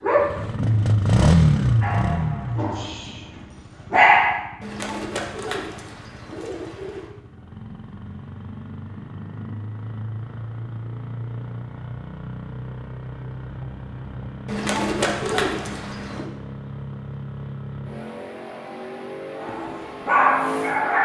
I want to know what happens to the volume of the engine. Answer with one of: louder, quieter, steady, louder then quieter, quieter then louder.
quieter then louder.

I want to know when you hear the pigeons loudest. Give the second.
15 s.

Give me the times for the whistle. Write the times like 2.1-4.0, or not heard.
not heard.